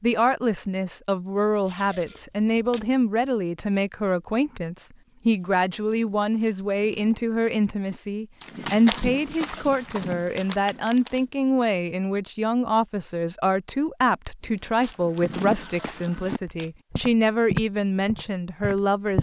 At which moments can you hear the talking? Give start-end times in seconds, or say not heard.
0.0-19.1.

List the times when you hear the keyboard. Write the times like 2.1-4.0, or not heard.
not heard.